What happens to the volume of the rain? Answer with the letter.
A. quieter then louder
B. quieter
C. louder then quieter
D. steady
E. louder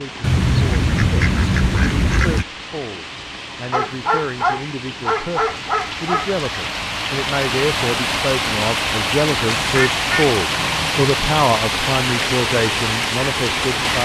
E.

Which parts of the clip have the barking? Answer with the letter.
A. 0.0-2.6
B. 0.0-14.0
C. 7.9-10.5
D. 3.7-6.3
D.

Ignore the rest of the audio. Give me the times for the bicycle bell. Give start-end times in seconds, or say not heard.
not heard.